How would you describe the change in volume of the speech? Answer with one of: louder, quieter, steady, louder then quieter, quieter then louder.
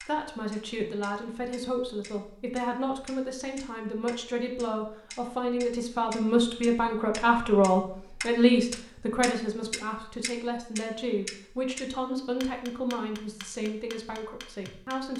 louder then quieter.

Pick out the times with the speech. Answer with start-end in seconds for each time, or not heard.
0.0-15.1.